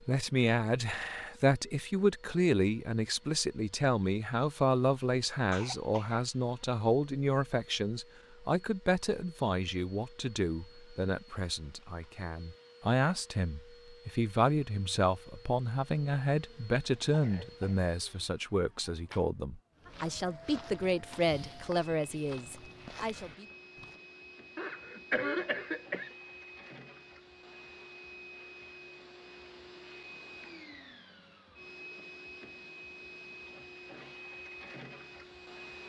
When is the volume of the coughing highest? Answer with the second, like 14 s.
25 s.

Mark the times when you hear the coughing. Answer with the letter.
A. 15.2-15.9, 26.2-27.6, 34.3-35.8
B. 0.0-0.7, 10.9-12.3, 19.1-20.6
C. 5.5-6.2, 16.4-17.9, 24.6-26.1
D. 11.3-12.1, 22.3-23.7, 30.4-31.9
C.